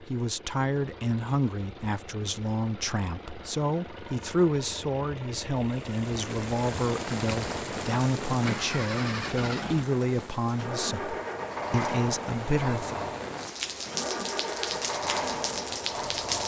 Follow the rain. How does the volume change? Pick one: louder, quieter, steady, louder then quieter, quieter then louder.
quieter then louder.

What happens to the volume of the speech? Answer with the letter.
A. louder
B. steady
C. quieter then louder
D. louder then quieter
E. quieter
B.